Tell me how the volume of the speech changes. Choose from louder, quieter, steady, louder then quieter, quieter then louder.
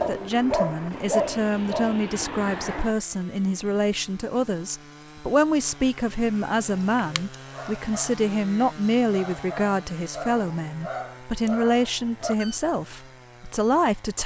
steady.